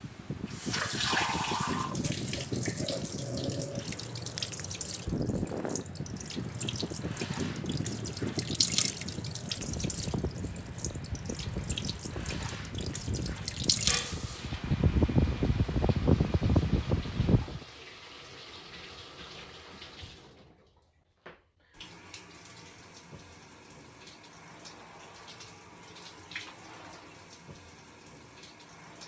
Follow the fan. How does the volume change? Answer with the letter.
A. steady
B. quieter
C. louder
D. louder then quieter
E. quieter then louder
C.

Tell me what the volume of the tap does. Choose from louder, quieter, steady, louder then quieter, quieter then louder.
quieter.